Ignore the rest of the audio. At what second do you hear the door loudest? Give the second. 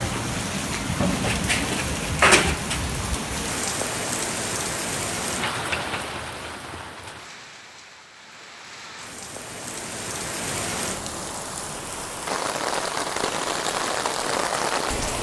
2 s.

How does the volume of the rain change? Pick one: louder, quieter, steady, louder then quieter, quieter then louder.
quieter then louder.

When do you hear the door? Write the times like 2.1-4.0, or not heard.
1.0-2.8.